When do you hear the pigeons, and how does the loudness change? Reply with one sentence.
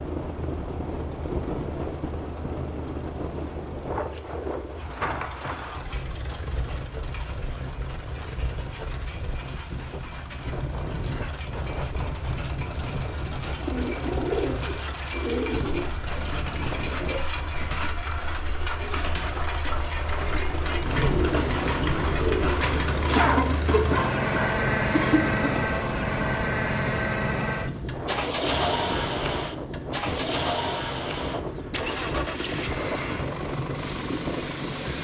You can hear the pigeons from 13.6 to 23.2 s, getting quieter then louder.